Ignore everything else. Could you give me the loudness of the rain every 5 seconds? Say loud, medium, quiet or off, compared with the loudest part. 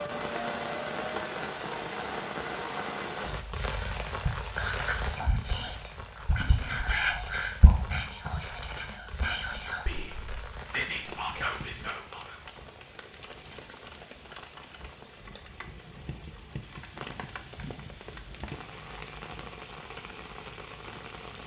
loud, medium, medium, medium, medium.